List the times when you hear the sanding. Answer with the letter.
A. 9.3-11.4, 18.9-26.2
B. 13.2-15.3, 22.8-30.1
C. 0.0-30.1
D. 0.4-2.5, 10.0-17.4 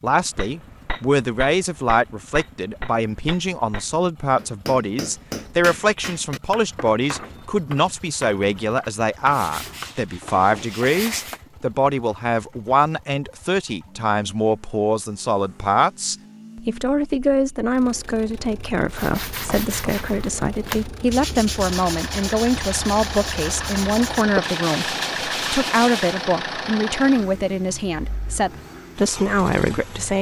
A.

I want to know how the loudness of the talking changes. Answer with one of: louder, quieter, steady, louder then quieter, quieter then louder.
steady.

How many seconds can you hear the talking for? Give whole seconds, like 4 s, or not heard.
30 s.